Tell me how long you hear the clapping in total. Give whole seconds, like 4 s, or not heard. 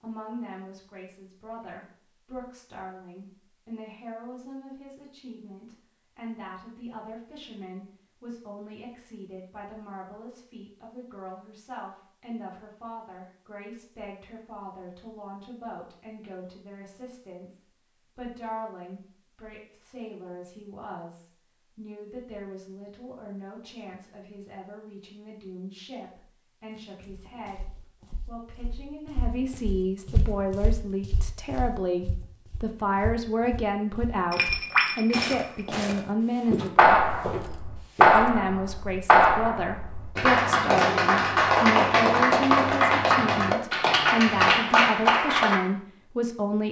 9 s.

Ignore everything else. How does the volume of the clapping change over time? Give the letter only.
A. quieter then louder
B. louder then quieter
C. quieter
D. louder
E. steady
E.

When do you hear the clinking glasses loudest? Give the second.
35 s.